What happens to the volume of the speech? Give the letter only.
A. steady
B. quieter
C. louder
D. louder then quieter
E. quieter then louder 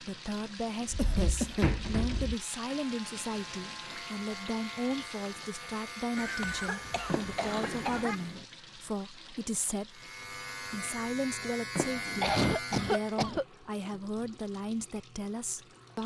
A.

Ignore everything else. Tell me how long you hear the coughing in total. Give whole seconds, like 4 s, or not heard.
4 s.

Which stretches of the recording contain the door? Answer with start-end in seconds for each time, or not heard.
0.8-2.4, 7.0-8.4, 11.8-12.3.